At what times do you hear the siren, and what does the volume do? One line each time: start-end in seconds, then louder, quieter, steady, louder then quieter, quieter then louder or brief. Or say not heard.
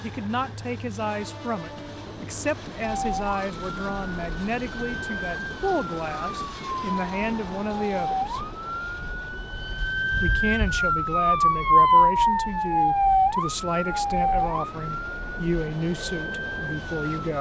2.9-17.3 louder then quieter.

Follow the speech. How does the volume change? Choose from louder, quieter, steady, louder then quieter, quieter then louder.
steady.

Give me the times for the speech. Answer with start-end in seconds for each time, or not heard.
0.0-8.4, 10.2-17.3.